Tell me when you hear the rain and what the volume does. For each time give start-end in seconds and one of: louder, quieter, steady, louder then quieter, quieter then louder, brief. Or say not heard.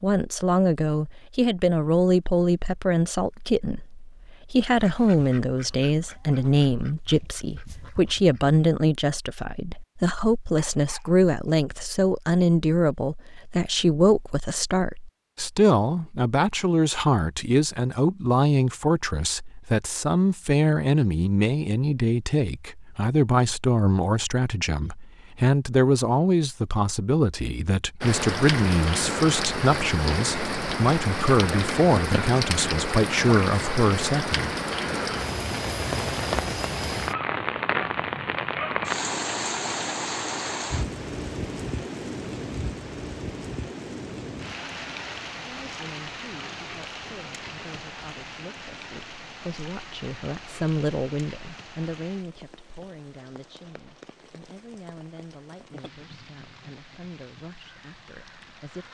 28.0-58.8 quieter.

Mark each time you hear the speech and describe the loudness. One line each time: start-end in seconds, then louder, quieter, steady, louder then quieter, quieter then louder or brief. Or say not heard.
0.0-34.5 steady
45.5-58.8 louder then quieter.